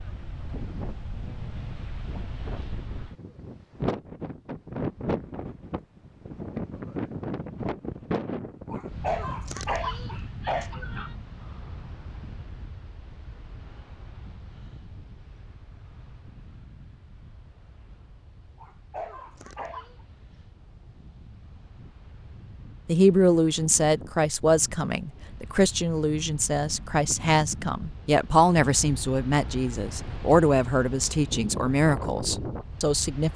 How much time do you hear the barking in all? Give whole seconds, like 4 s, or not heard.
4 s.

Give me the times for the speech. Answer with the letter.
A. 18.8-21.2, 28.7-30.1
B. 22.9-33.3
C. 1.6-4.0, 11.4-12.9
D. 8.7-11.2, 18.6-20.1
B.